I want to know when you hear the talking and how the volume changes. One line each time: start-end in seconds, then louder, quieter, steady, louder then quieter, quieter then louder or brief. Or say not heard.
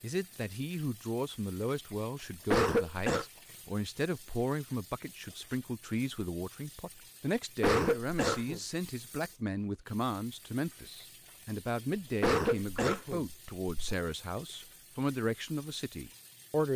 0.0-16.7 steady.